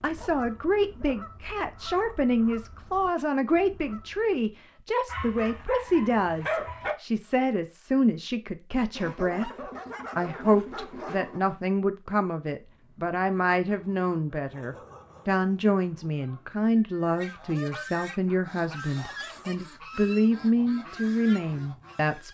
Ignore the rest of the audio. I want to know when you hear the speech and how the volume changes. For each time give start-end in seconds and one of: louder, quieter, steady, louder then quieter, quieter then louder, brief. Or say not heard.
0.0-22.2 steady.